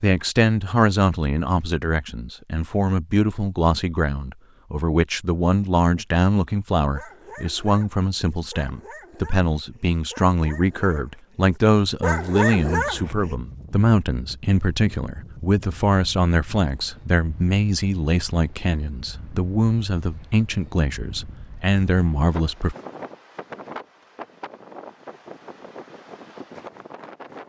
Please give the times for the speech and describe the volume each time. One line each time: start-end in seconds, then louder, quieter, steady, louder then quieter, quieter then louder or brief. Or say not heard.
0.0-22.8 steady.